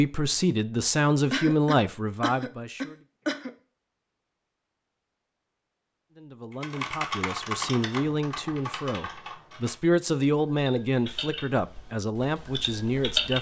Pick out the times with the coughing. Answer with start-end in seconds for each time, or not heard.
1.3-3.5.